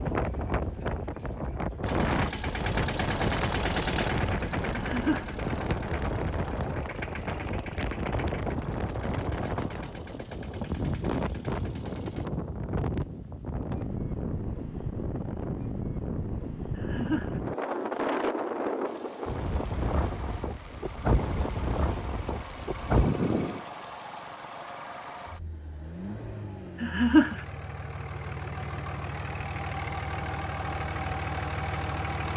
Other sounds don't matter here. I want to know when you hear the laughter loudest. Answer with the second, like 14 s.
27 s.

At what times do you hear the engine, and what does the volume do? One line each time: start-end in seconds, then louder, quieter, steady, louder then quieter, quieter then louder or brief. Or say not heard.
1.8-12.3 quieter
18.9-32.3 louder.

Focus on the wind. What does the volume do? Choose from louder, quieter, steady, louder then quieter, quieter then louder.
steady.